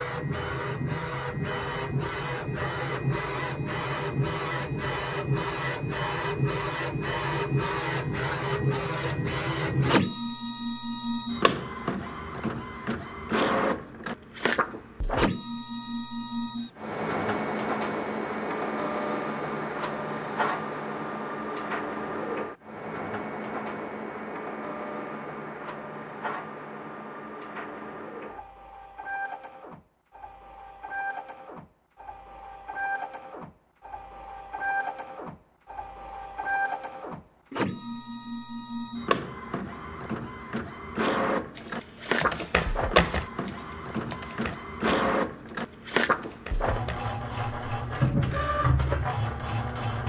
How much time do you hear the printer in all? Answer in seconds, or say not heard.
50 s.